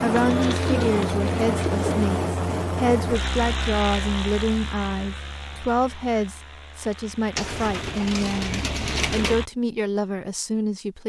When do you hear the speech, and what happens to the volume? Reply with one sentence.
You can hear the speech from 0.0 to 11.0 s, at a steady volume.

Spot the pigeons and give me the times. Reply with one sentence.
You can hear the pigeons from 0.1 to 2.1 s and from 7.3 to 9.3 s.